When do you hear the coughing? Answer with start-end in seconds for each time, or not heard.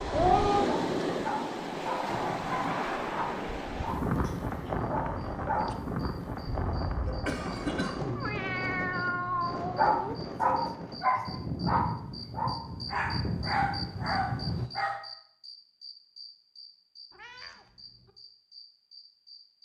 6.5-8.3.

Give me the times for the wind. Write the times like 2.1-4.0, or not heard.
0.0-14.7.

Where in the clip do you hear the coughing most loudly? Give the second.
8 s.